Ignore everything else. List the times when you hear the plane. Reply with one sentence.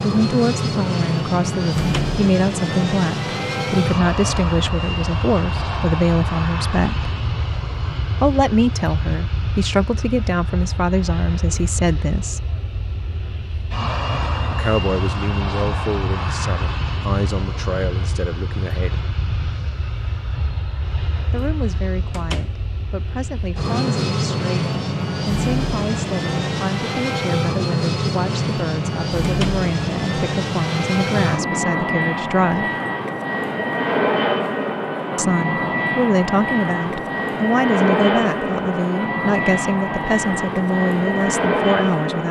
You can hear the plane from 0.0 to 42.2 s.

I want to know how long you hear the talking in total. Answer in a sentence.
You can hear the talking for 34 seconds altogether.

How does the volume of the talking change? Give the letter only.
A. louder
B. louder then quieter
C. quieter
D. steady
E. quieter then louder
E.